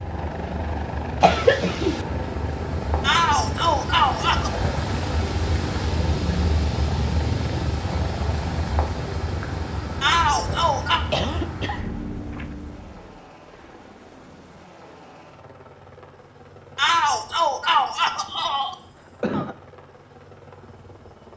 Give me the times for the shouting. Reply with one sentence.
You can hear the shouting from 3.0 to 4.5 s, from 10.0 to 11.0 s and from 16.8 to 18.8 s.